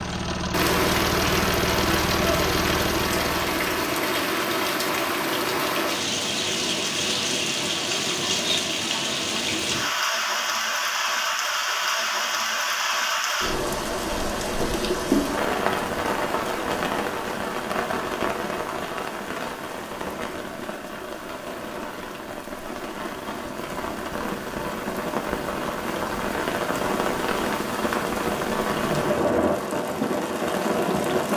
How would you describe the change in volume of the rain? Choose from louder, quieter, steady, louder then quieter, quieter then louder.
quieter then louder.